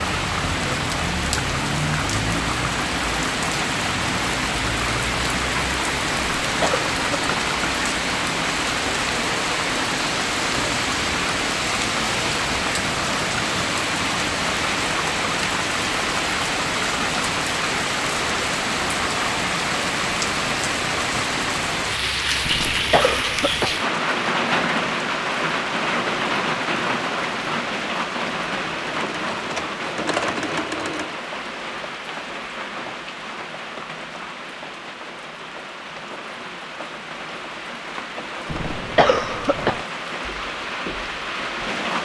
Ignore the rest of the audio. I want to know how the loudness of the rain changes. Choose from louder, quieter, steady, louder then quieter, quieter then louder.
quieter.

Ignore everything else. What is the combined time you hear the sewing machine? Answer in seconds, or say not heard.
2 s.